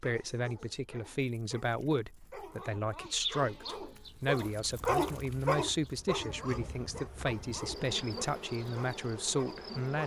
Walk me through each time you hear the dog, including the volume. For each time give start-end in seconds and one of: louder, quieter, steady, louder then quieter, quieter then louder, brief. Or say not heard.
0.0-10.0 louder then quieter.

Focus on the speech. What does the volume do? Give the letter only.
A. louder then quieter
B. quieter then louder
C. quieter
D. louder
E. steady
E.